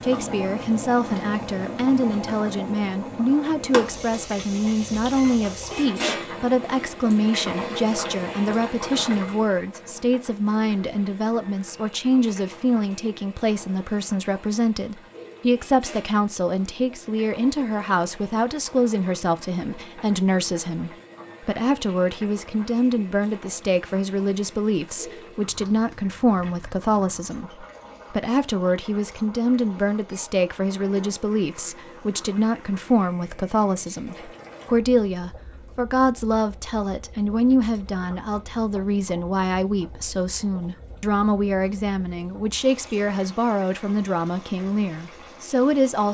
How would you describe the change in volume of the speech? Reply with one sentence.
The volume of the speech stays about the same.